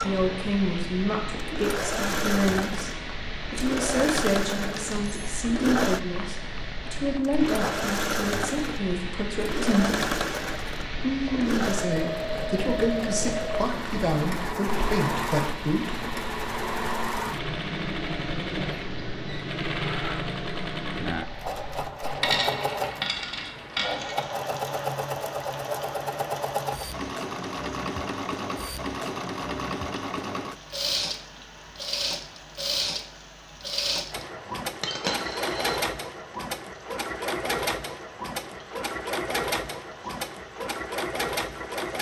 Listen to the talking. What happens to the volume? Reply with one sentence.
The loudness of the talking stays about the same.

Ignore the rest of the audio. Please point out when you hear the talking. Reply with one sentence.
The talking can be heard from 0.0 to 10.2 s and from 11.0 to 16.0 s.